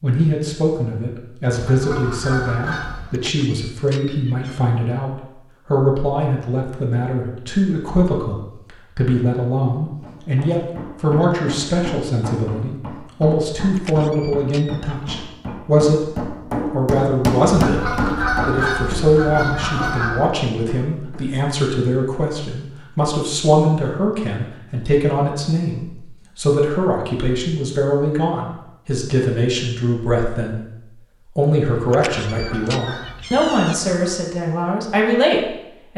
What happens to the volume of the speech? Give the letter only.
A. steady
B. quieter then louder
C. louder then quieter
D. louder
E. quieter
A.